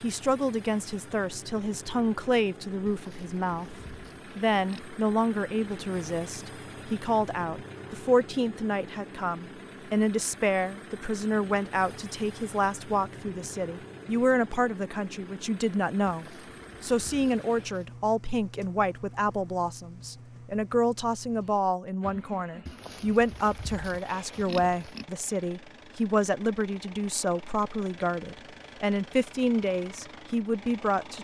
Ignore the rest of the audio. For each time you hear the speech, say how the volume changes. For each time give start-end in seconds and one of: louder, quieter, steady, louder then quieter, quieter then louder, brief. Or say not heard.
0.0-31.1 steady.